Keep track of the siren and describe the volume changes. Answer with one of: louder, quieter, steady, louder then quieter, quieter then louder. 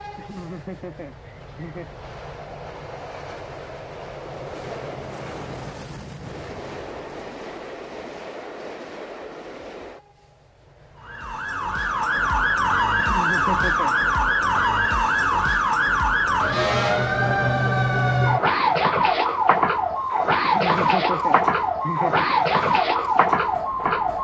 steady.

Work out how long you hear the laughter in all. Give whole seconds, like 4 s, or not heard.
5 s.